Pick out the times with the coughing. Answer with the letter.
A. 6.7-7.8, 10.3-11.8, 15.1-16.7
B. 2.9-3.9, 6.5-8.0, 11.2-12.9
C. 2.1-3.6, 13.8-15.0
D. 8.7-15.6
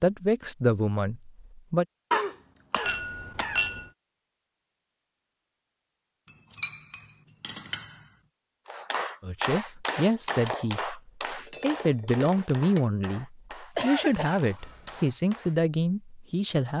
C.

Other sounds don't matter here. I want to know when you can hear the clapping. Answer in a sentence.
The clapping can be heard from 8.7 to 15.6 s.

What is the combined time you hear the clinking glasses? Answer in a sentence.
The clinking glasses can be heard for 4 seconds in total.